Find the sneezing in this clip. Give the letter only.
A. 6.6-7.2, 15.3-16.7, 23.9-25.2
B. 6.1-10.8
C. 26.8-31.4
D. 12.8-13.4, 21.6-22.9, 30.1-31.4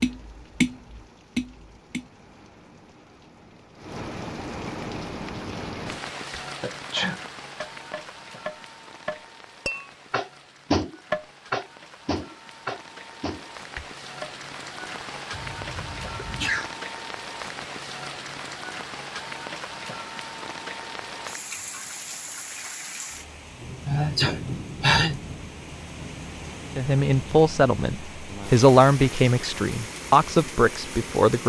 A.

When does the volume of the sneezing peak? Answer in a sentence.
The loudest moment of the sneezing is at 25 seconds.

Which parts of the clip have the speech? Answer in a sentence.
The speech can be heard from 26.8 to 31.4 s.